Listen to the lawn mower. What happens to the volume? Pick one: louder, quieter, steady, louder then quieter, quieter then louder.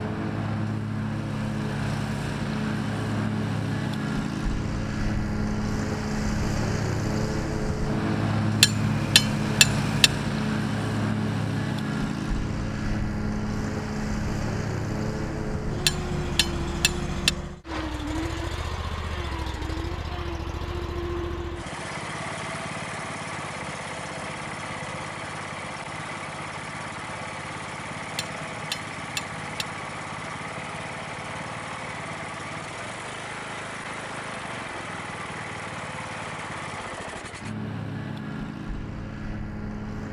quieter.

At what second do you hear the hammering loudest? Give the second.
9 s.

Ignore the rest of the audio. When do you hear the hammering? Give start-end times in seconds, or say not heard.
8.6-10.1, 15.8-17.3, 28.1-29.6.